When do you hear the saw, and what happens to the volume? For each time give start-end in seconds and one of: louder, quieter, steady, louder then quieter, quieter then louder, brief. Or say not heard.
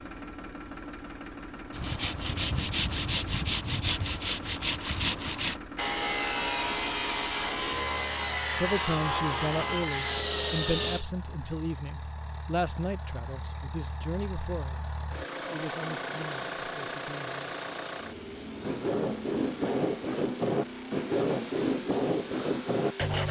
1.7-11.1 steady
18.6-23.2 steady.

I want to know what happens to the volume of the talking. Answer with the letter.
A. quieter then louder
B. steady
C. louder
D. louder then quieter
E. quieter
E.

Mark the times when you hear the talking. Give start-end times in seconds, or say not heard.
8.6-17.5.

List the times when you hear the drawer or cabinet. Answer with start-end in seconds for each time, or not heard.
not heard.